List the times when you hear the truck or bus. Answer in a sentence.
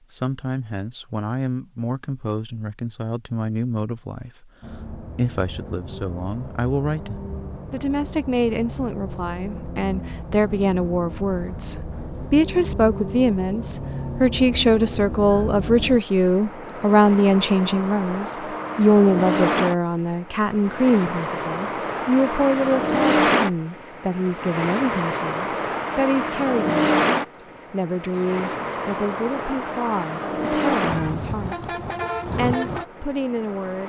The truck or bus can be heard from 4.6 to 33.8 s.